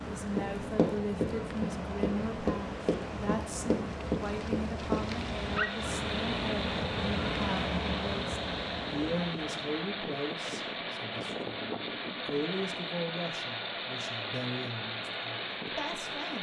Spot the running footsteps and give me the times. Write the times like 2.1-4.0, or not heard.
0.0-5.0.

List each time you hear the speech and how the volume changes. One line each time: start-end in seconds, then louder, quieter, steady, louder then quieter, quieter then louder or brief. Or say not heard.
0.1-16.3 steady.